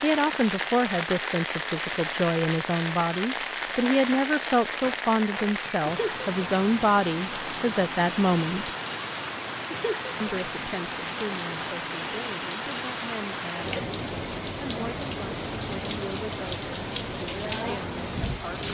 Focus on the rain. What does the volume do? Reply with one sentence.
The volume of the rain stays about the same.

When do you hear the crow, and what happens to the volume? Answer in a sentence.
The crow can't be heard in this clip.